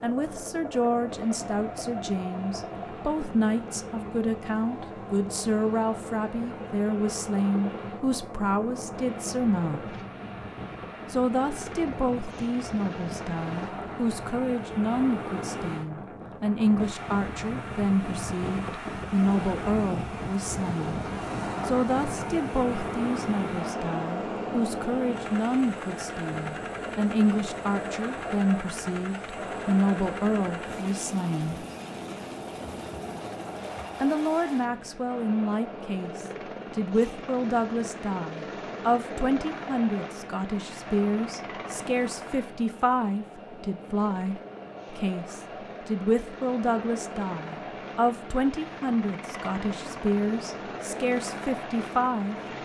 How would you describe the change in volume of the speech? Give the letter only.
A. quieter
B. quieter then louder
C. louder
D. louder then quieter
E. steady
E.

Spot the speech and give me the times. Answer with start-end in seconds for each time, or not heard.
0.0-9.9, 11.1-21.0, 21.6-31.6, 34.0-52.4.